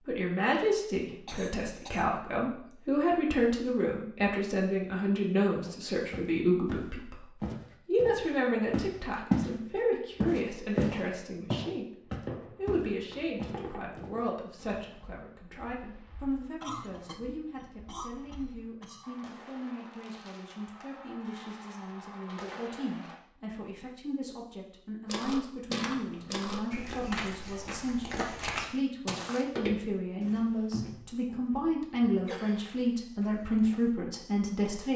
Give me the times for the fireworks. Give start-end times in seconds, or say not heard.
12.0-23.2.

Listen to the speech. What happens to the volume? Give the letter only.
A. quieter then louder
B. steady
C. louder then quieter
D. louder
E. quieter
A.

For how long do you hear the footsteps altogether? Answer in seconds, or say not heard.
17 s.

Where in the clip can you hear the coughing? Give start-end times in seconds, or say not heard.
0.6-2.1, 16.6-19.1, 32.2-32.8.